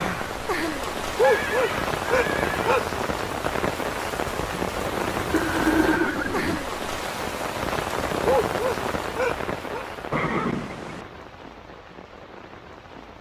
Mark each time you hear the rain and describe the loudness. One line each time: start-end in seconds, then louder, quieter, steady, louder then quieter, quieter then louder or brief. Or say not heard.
0.0-13.1 quieter.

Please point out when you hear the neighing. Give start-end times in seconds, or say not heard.
1.2-2.9, 5.3-6.6, 10.1-11.1.